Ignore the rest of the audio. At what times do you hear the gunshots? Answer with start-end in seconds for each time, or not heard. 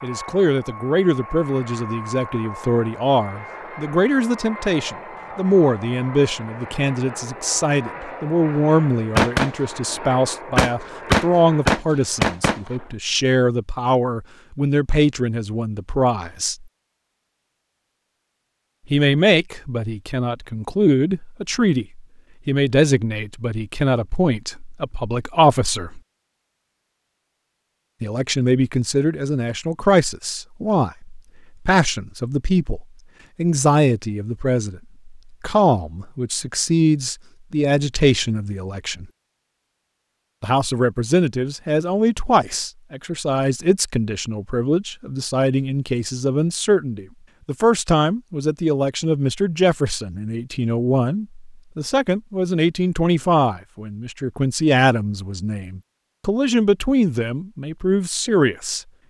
9.2-12.8.